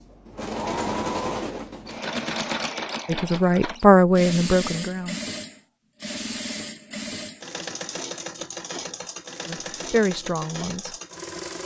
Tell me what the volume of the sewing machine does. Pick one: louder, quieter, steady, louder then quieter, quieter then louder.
quieter.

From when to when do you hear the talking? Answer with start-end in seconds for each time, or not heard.
3.0-5.2, 9.4-10.9.